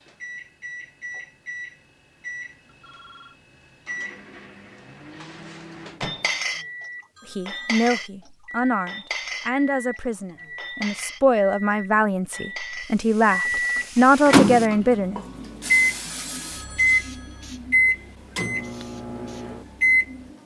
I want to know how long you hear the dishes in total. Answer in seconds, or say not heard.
8 s.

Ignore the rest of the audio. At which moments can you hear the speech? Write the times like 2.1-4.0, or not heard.
7.3-15.2.